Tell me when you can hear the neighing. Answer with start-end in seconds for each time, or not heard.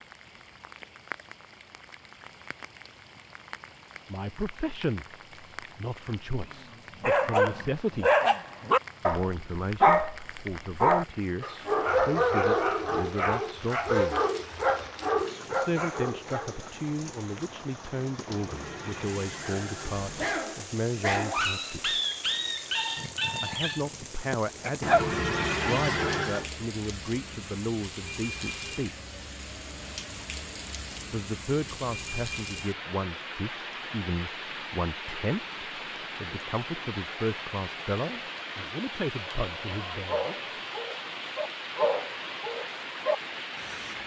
18.2-20.3, 24.8-26.5.